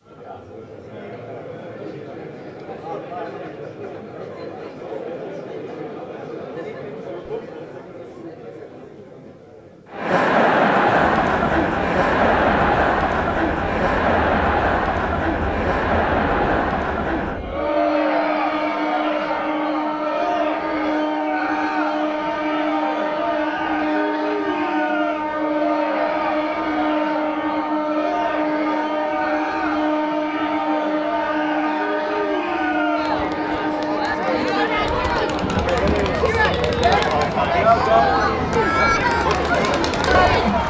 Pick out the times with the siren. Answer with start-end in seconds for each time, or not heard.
not heard.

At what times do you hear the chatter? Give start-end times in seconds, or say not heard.
0.0-40.6.